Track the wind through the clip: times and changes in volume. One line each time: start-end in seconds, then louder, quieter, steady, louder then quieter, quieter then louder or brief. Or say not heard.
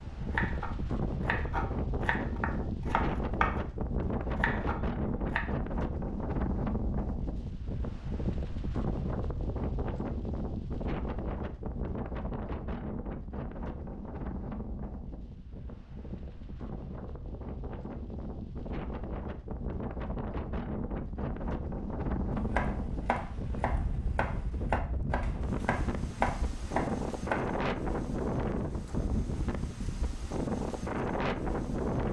0.0-32.0 quieter then louder.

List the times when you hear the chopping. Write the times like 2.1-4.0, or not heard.
0.1-5.5, 22.4-27.6.